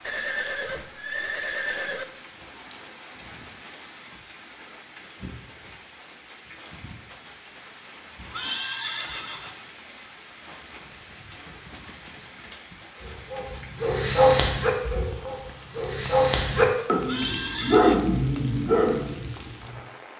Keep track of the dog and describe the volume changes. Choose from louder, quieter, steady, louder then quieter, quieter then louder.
quieter then louder.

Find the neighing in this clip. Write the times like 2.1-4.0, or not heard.
0.0-2.0, 8.3-9.8, 17.1-18.0.